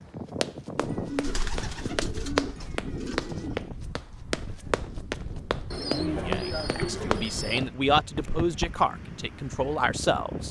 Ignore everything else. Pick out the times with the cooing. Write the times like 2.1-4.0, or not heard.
0.8-3.6, 5.7-7.7.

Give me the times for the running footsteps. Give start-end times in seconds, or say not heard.
0.4-8.8.